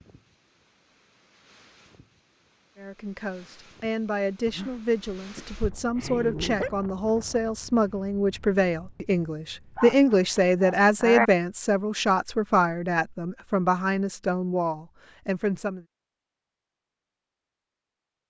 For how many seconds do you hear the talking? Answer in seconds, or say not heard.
13 s.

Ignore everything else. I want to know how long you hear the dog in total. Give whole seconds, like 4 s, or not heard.
4 s.